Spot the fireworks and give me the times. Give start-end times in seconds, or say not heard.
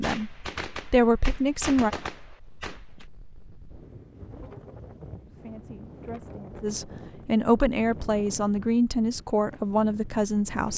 0.0-3.0.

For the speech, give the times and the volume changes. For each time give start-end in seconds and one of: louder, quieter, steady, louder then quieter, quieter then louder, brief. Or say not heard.
0.0-1.9 brief
5.2-10.7 louder.